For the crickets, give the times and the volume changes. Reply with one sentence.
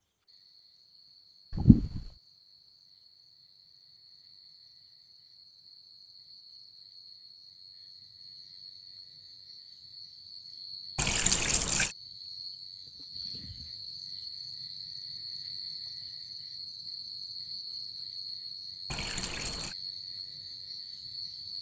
You can hear the crickets from 0.0 to 21.5 s, getting louder.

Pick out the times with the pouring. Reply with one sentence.
The pouring can be heard from 1.5 to 2.1 s, from 10.9 to 11.9 s and from 18.9 to 19.8 s.